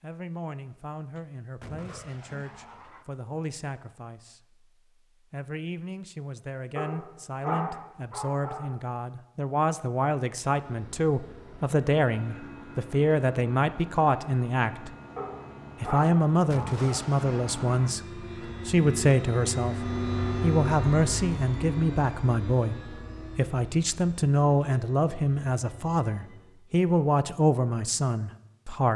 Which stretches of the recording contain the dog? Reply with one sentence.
You can hear the dog from 6.8 to 8.7 s and from 15.2 to 17.1 s.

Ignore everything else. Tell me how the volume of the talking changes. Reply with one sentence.
The loudness of the talking goes up.